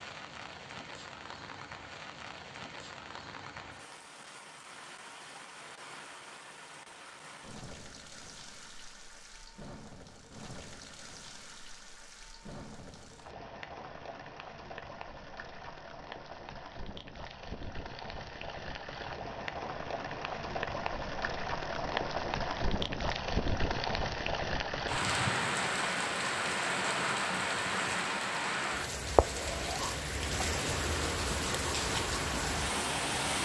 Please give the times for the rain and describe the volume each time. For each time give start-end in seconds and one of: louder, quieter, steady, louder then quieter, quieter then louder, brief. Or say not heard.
0.0-33.4 louder.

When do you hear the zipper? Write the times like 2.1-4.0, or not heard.
29.3-30.0.